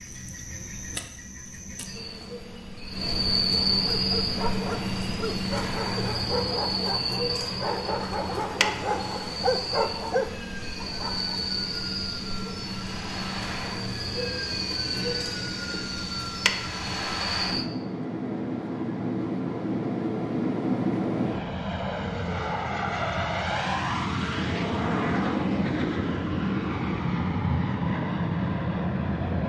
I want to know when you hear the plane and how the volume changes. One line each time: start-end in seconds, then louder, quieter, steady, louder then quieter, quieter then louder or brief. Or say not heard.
7.2-29.4 louder.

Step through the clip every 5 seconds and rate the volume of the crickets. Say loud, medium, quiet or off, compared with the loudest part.
loud, loud, loud, loud, off, off.